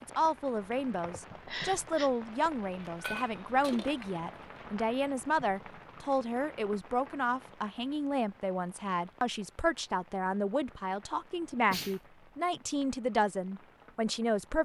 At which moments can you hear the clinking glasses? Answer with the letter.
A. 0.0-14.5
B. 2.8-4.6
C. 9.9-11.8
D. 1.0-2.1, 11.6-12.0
B.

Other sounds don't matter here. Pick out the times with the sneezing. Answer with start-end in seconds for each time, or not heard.
1.0-2.1, 11.6-12.0.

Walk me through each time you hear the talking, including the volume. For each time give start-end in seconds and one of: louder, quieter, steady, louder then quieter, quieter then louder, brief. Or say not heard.
0.0-14.5 steady.